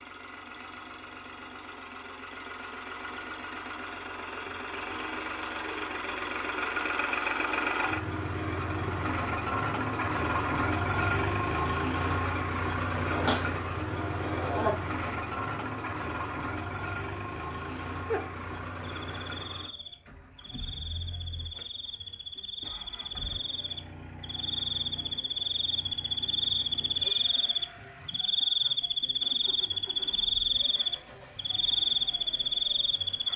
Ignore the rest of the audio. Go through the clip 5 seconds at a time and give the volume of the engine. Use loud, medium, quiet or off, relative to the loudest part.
medium, loud, loud, medium, quiet, quiet, quiet.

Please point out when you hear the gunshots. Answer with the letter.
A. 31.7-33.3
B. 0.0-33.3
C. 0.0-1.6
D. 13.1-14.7
D.